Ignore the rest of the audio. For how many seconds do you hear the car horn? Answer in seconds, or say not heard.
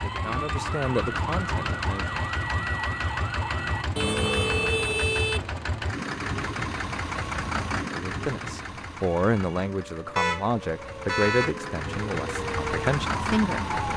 3 s.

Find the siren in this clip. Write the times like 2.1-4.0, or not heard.
0.0-3.9, 9.2-13.9.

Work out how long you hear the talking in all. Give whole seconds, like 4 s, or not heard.
8 s.